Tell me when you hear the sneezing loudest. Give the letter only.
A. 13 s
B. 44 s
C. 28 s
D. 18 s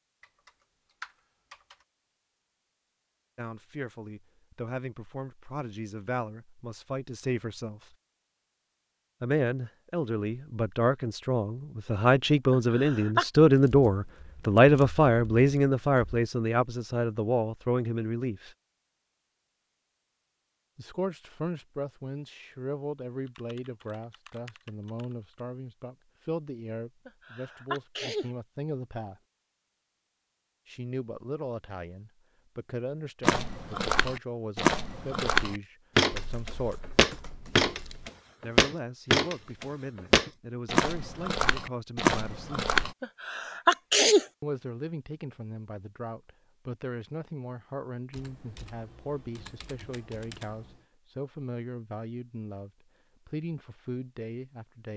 B.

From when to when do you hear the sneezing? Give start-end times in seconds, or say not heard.
12.5-13.2, 27.1-28.3, 43.0-44.2.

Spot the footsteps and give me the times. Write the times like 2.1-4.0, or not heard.
33.2-43.0.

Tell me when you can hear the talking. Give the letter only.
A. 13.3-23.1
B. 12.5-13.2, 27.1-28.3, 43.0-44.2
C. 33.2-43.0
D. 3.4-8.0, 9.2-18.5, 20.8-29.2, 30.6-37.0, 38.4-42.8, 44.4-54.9
D.